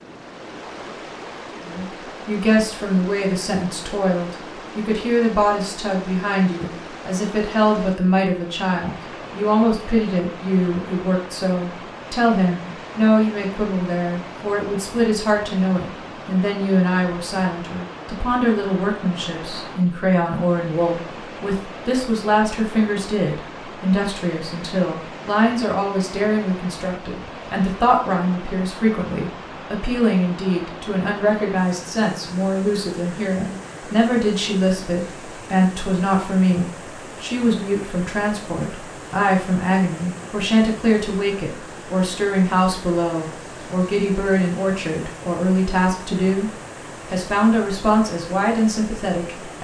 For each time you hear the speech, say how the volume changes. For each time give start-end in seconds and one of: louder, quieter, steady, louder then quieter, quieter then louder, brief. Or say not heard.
1.6-46.5 steady
47.1-49.5 brief.